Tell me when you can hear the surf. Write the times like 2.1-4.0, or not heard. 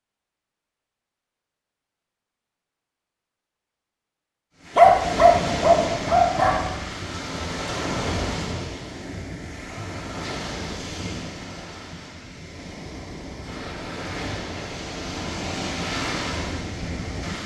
4.6-17.4.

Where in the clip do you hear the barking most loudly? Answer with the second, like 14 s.
5 s.